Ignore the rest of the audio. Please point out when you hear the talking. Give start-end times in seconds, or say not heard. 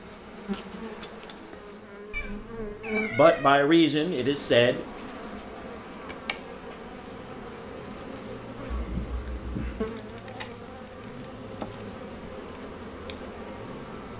3.1-4.8.